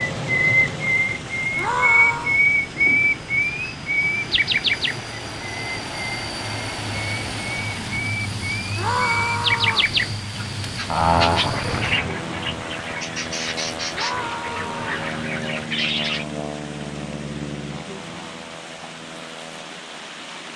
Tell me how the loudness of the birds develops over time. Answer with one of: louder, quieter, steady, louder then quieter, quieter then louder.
quieter.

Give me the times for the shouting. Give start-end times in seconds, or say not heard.
1.6-2.4, 8.8-9.9, 13.9-15.1.